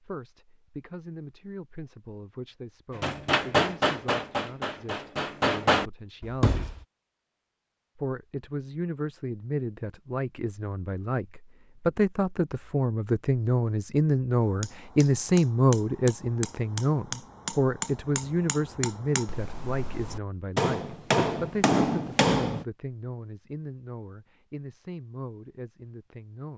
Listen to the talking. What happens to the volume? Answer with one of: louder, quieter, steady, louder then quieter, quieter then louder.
louder then quieter.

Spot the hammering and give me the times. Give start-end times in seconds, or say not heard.
3.0-6.8, 14.4-22.6.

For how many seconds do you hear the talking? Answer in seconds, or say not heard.
25 s.